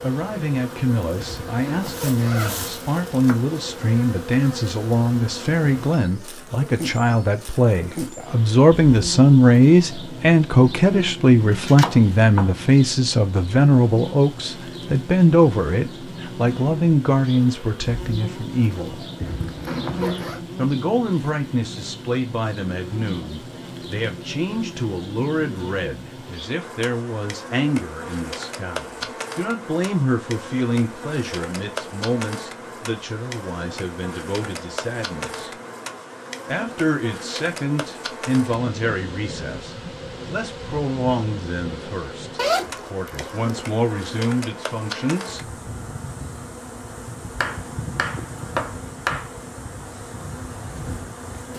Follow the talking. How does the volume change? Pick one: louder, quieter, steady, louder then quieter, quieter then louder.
louder then quieter.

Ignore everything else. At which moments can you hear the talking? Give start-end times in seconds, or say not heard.
0.0-19.0, 20.6-35.5, 36.5-45.4.